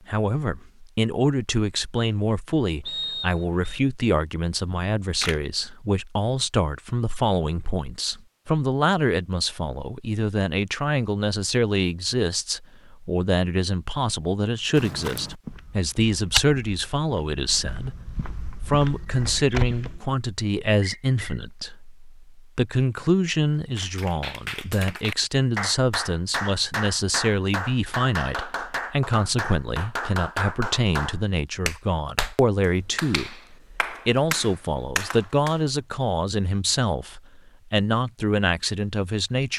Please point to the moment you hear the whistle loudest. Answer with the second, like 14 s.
3 s.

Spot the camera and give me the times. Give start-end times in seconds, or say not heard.
4.7-5.4.